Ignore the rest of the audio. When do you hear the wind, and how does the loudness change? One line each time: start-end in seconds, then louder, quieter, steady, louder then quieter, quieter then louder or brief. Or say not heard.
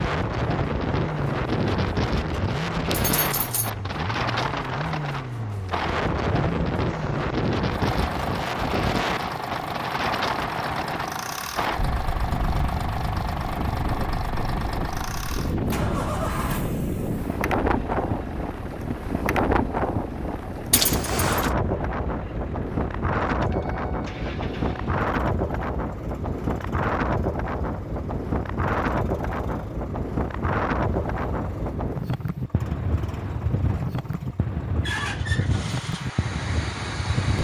0.0-37.4 steady.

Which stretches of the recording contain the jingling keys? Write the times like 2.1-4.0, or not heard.
2.9-3.7, 20.7-21.5.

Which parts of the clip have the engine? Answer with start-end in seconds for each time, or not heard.
0.0-37.4.